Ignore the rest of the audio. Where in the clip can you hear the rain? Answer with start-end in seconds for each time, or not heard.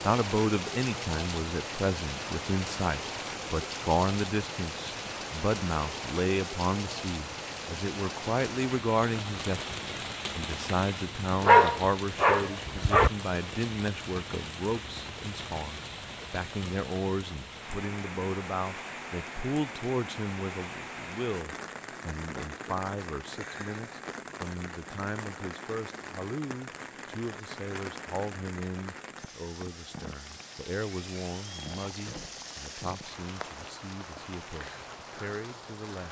0.0-36.0.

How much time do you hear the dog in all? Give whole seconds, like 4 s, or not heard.
2 s.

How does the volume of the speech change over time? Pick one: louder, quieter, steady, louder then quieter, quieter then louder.
quieter.